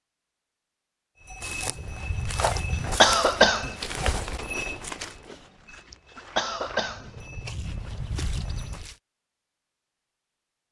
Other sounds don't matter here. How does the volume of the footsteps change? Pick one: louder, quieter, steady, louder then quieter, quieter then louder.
quieter then louder.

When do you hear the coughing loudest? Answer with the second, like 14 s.
3 s.